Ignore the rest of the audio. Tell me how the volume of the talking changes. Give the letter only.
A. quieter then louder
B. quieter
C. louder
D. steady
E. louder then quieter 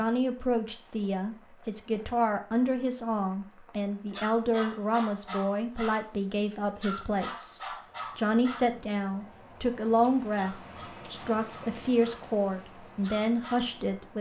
D.